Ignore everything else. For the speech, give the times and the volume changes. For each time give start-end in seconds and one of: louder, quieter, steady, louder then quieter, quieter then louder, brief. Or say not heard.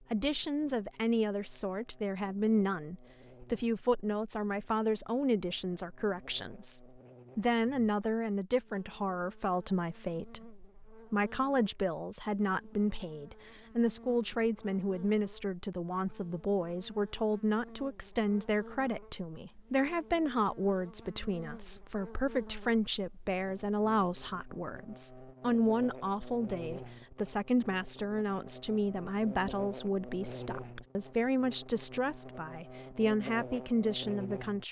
0.1-34.6 steady.